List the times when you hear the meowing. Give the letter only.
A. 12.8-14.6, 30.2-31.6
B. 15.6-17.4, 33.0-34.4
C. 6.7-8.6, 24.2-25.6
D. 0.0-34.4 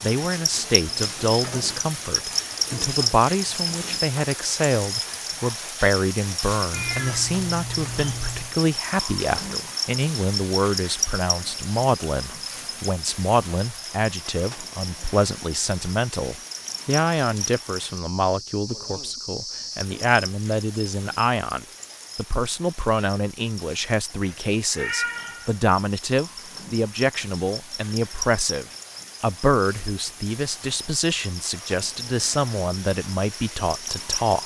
C.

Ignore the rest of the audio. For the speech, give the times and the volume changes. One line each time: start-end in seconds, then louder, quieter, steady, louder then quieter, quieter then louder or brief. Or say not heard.
0.0-34.4 steady.